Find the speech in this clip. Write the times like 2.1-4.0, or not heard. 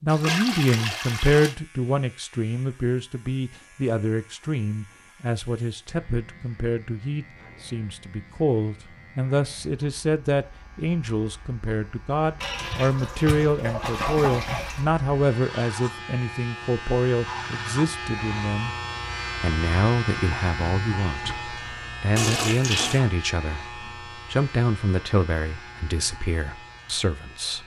0.0-18.8, 19.4-27.6.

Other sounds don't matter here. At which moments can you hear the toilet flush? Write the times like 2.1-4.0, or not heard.
0.1-1.6, 12.4-14.9, 22.1-23.0.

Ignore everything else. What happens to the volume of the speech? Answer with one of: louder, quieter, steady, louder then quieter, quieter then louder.
steady.